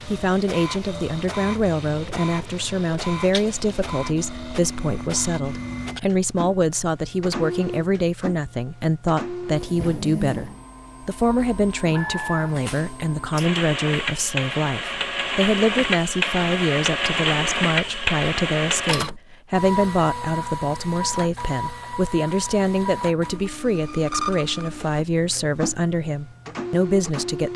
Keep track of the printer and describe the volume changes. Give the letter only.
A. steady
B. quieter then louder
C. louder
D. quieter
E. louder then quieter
E.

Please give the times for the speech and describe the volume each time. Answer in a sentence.
You can hear the speech from 0.1 to 27.5 s, at a steady volume.